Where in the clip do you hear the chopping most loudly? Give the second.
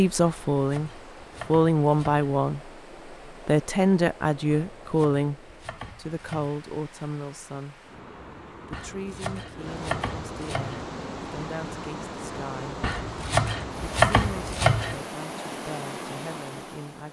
14 s.